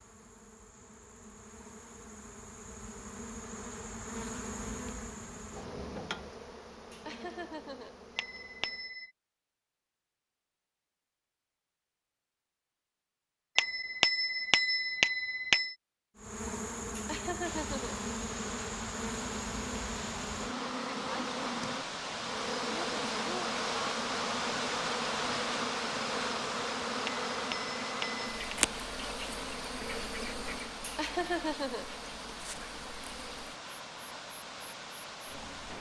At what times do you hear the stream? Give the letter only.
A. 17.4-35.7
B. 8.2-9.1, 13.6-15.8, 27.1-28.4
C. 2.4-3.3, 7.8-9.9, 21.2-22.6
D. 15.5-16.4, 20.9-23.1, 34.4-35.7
A.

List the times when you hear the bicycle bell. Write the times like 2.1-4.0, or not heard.
8.2-9.1, 13.6-15.8, 27.1-28.4.